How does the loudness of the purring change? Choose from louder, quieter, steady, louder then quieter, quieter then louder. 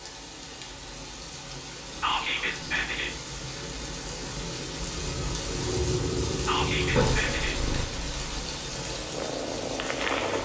quieter then louder.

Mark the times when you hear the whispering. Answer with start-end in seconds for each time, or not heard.
2.0-3.1, 6.5-7.5.